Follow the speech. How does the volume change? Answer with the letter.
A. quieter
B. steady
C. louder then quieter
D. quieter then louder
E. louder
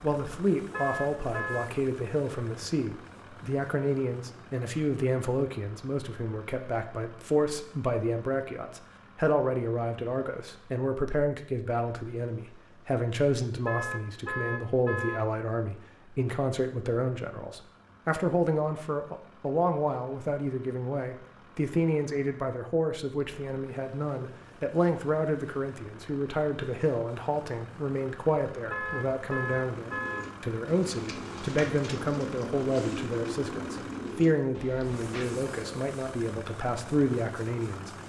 B.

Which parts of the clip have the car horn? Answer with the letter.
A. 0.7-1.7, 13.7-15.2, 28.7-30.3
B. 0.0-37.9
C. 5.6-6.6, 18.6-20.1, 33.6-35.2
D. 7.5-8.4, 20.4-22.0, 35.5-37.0
A.